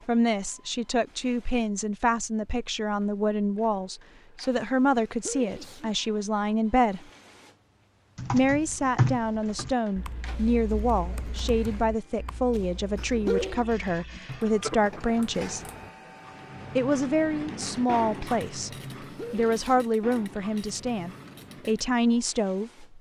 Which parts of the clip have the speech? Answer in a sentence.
The speech can be heard from 0.1 to 7.0 s, from 8.3 to 15.6 s, from 16.8 to 18.7 s and from 19.3 to 22.9 s.